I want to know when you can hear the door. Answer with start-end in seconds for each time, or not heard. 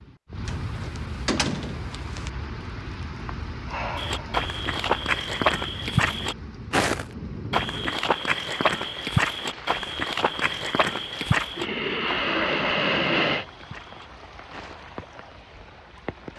0.5-2.3.